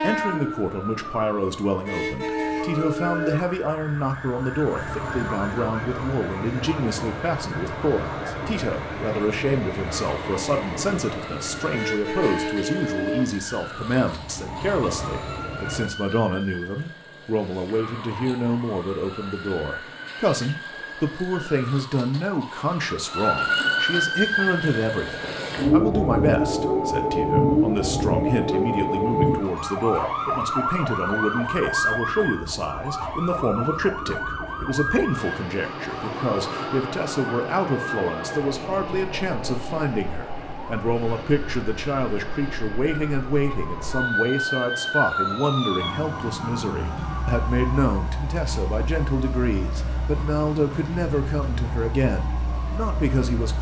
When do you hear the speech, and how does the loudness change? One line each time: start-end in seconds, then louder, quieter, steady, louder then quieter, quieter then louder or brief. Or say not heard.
0.0-53.5 steady.